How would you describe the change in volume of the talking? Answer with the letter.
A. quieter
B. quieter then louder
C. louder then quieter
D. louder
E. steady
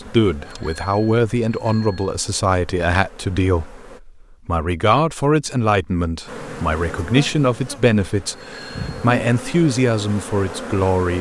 E.